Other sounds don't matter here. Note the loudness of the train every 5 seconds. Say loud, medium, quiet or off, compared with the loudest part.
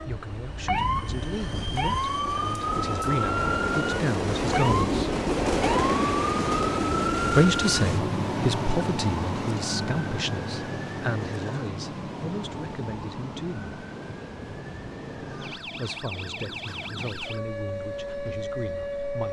loud, loud, quiet, quiet.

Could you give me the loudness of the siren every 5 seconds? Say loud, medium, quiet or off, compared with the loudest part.
loud, loud, medium, medium.